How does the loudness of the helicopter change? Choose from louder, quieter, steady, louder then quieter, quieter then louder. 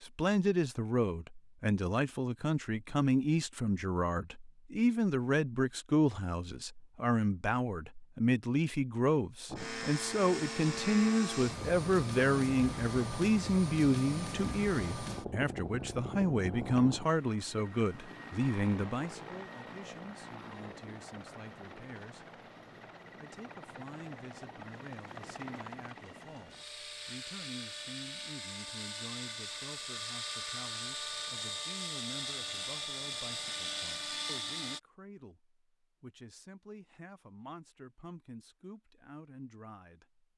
quieter then louder.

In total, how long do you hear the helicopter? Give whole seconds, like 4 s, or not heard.
25 s.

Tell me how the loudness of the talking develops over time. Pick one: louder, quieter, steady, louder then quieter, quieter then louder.
quieter.